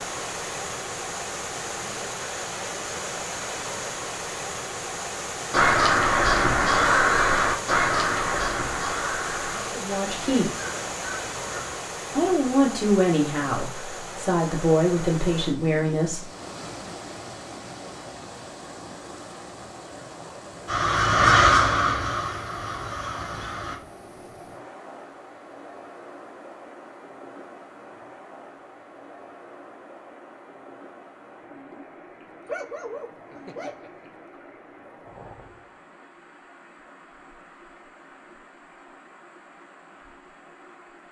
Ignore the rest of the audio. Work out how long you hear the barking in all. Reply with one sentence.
You can hear the barking for 2 seconds altogether.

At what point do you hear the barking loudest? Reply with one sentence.
The loudest moment of the barking is at 33 seconds.